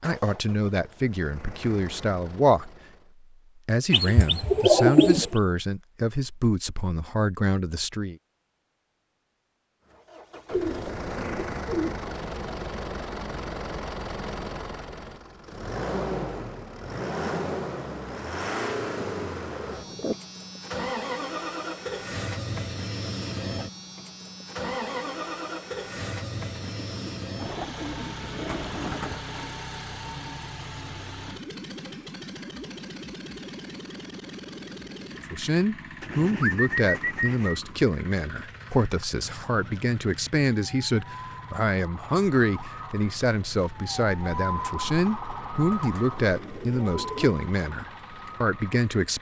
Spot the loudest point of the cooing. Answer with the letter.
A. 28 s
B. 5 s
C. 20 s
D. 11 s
B.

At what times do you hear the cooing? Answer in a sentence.
You can hear the cooing from 3.9 to 5.2 s, from 10.5 to 12.0 s, from 19.0 to 20.1 s, from 26.8 to 29.2 s, from 36.0 to 37.6 s and from 45.7 to 47.3 s.